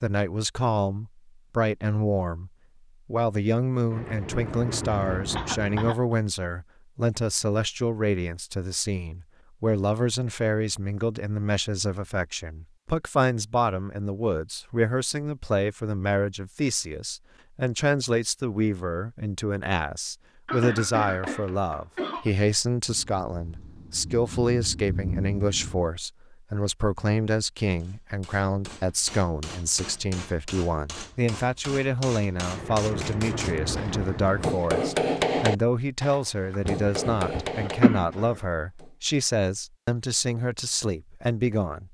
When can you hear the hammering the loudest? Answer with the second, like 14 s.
35 s.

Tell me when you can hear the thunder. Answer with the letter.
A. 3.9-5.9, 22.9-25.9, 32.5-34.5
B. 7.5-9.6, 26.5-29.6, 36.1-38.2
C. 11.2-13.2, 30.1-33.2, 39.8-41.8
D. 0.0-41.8
A.